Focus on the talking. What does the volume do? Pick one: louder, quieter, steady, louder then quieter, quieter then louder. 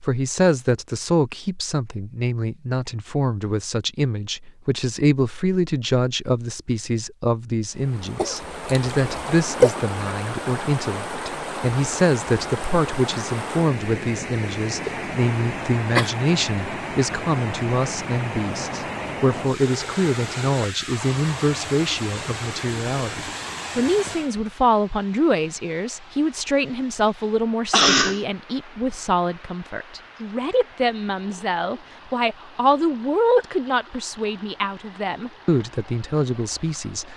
steady.